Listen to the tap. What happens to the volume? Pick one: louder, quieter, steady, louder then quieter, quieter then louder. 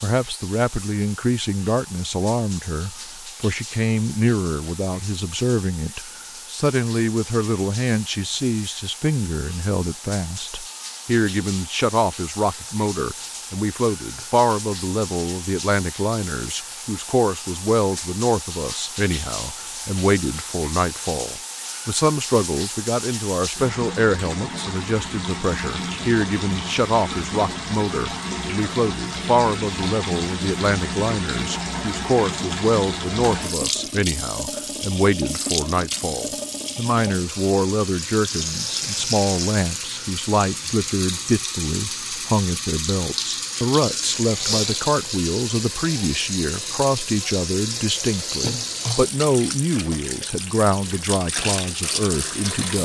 louder.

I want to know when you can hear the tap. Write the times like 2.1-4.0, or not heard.
0.0-52.8.